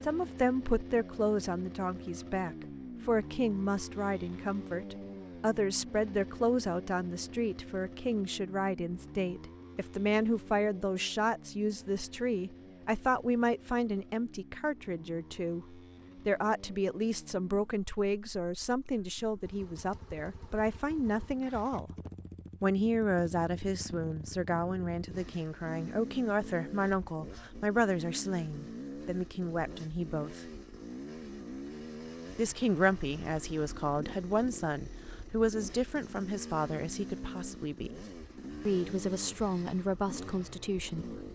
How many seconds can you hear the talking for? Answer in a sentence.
The talking can be heard for 38 seconds in total.